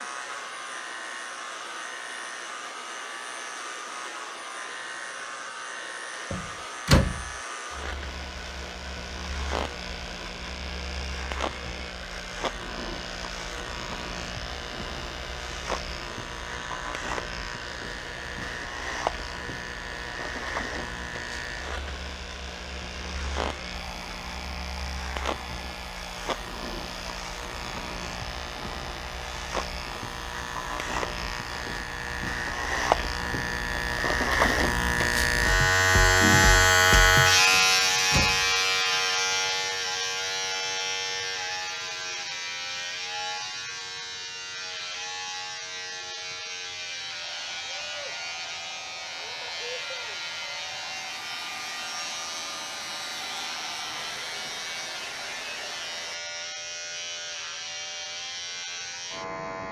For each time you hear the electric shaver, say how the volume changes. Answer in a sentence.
The electric shaver can be heard from 0.0 to 59.6 s, getting louder then quieter.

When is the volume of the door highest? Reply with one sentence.
The loudest moment of the door is at 7 seconds.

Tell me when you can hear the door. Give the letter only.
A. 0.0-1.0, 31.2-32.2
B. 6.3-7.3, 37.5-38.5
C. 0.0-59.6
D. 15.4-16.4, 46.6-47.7
B.